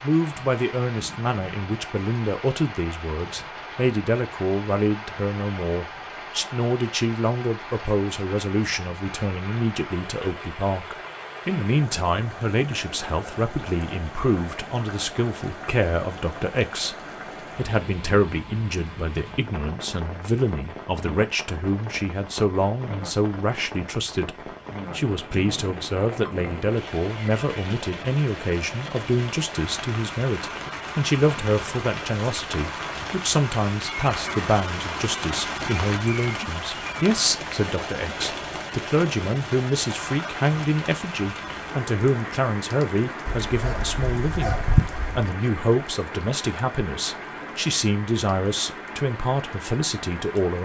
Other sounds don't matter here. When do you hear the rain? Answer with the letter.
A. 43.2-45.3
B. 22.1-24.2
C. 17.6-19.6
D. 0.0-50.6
D.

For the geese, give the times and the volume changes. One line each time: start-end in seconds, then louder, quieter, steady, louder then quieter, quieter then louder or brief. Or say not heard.
not heard.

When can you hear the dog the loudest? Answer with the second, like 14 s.
45 s.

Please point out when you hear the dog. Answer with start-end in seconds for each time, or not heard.
43.2-45.3.